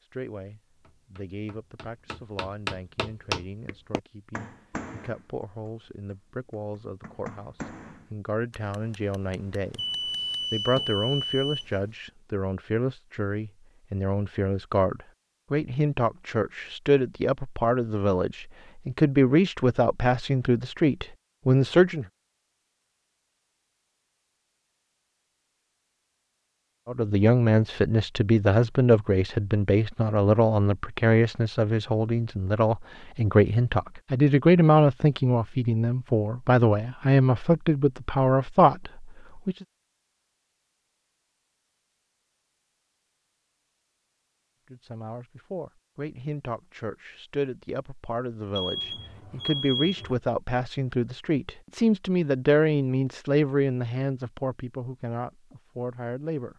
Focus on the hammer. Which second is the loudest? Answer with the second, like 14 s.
3 s.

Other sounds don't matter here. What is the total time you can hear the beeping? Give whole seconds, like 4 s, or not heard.
4 s.